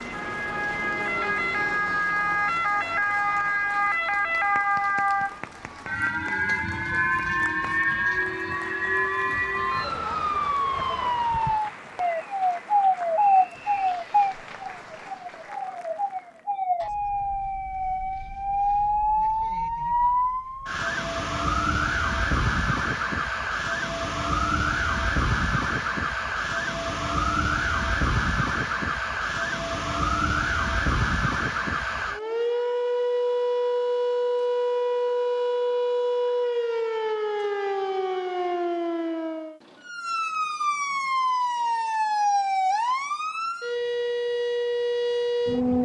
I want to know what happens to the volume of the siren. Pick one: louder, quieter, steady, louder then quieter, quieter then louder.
steady.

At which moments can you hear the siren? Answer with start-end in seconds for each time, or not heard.
0.0-45.8.